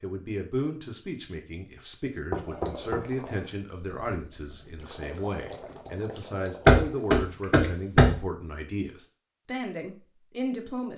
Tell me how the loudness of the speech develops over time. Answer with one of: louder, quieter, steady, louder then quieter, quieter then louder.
steady.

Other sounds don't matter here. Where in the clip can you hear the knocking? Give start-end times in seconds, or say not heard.
2.3-3.2, 6.7-8.2.